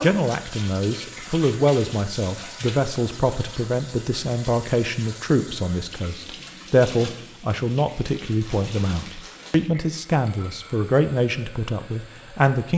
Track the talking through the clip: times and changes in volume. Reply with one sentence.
You can hear the talking from 0.0 to 12.7 s, at a steady volume.